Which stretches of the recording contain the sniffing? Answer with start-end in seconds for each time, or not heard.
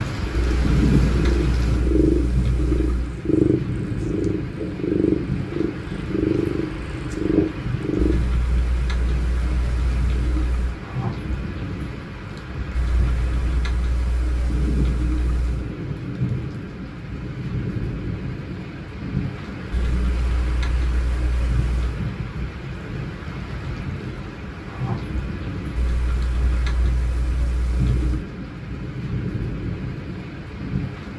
not heard.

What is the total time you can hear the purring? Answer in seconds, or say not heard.
8 s.